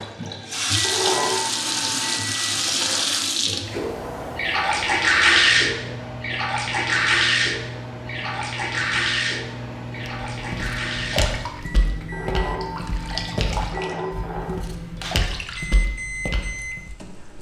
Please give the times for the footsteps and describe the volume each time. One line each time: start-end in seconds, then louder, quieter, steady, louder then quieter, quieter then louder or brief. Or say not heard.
10.0-16.9 steady.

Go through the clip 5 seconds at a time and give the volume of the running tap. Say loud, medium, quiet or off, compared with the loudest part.
loud, loud, medium, quiet.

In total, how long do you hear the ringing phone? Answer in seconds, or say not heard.
4 s.